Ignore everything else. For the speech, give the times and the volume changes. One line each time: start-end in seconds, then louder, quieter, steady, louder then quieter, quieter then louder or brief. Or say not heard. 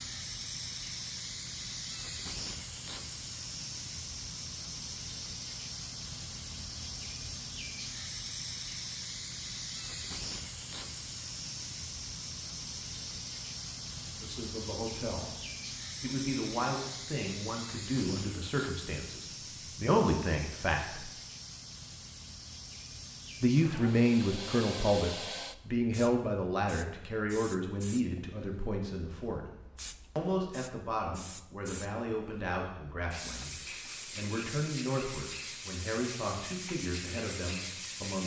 14.2-15.3 brief
16.0-21.1 quieter then louder
23.4-29.4 quieter
30.1-38.2 steady.